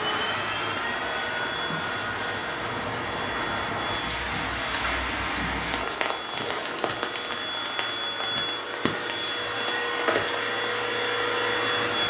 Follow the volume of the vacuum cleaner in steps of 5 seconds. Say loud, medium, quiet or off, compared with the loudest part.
medium, medium, loud.